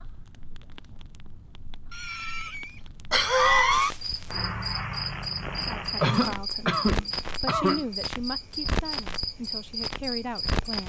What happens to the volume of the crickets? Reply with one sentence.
The volume of the crickets stays about the same.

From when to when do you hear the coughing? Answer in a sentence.
You can hear the coughing from 1.9 to 3.9 s and from 6.0 to 7.8 s.